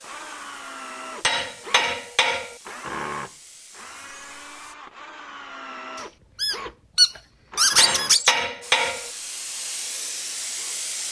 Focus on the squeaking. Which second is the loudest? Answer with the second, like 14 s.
8 s.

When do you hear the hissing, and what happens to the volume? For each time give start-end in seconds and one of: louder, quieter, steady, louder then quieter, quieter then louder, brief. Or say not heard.
0.0-4.8 steady
8.6-11.0 brief.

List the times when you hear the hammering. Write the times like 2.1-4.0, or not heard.
1.2-2.5, 7.8-9.1.